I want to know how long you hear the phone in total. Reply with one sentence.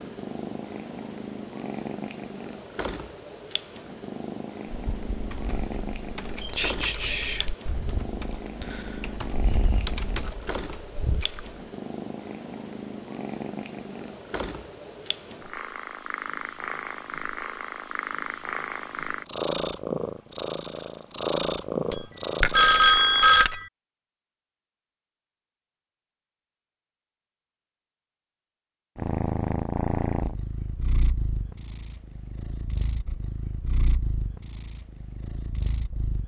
The phone can be heard for 2 seconds in total.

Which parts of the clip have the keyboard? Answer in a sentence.
You can hear the keyboard from 4.7 to 11.5 s.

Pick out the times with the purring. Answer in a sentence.
You can hear the purring from 0.0 to 23.3 s and from 28.9 to 36.2 s.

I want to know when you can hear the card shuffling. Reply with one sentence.
You can't hear the card shuffling here.